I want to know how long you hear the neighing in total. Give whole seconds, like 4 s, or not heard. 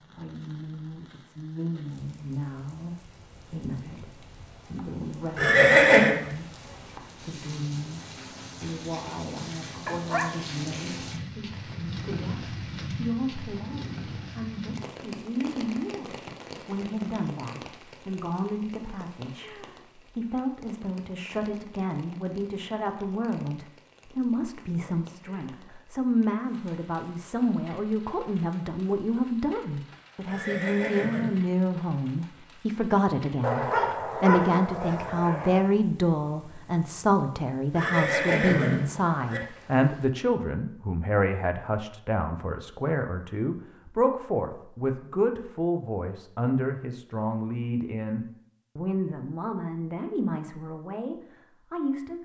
4 s.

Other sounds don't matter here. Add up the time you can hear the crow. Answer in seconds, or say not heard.
not heard.